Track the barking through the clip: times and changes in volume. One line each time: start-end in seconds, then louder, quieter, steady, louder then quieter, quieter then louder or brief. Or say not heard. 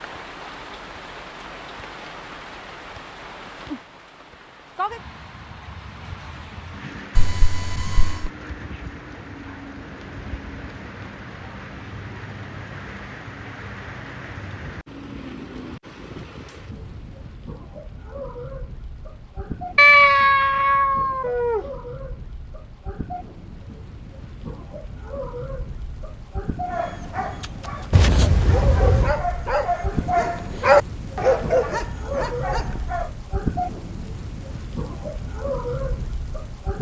26.6-33.1 louder then quieter.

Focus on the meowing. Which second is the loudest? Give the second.
20 s.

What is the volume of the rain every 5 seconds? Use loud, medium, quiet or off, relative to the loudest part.
medium, medium, medium, medium, medium, loud, loud, loud.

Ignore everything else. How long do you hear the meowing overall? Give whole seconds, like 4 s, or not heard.
4 s.